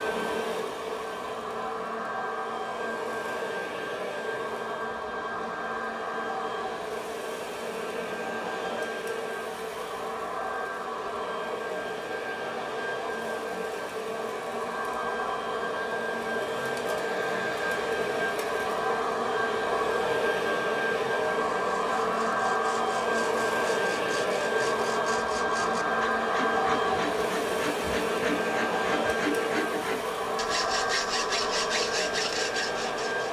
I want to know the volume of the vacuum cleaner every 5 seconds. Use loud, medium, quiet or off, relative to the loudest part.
medium, medium, medium, loud, loud, loud, loud.